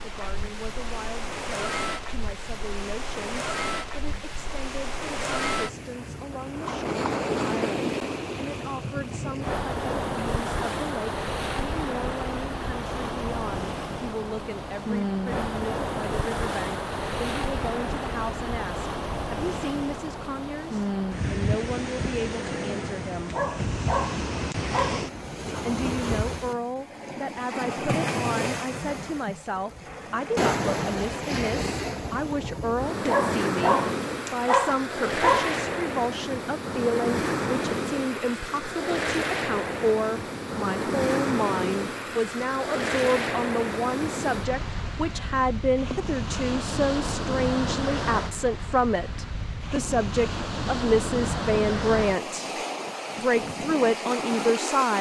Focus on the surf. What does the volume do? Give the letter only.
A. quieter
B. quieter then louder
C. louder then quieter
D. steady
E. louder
D.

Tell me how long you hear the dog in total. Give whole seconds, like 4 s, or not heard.
4 s.